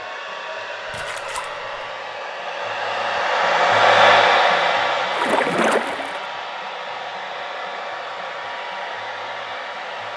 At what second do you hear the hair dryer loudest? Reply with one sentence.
The volume of the hair dryer peaks at 4 seconds.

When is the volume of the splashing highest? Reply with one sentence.
The loudest moment of the splashing is at 6 seconds.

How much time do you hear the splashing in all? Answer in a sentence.
You can hear the splashing for 2 seconds altogether.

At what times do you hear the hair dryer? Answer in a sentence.
You can hear the hair dryer from 0.0 to 10.1 s.